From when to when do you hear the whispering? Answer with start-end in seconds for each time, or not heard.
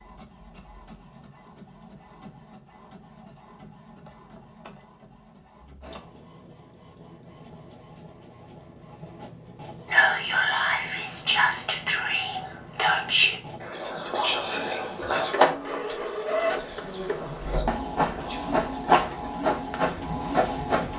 9.9-19.3.